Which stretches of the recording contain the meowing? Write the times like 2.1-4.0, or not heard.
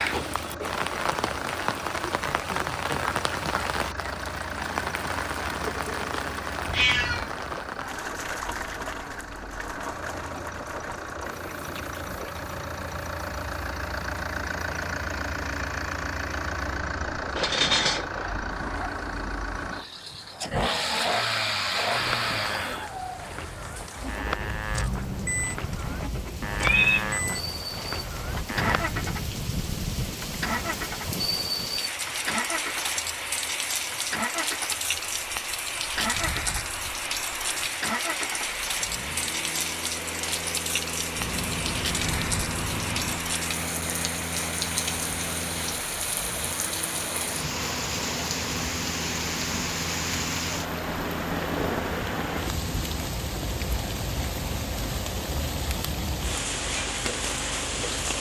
6.7-7.3, 26.6-27.2, 41.1-43.2.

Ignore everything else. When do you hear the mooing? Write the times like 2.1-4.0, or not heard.
21.9-28.9.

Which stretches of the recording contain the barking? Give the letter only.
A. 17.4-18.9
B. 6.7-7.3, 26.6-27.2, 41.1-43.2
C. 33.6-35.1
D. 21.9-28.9
A.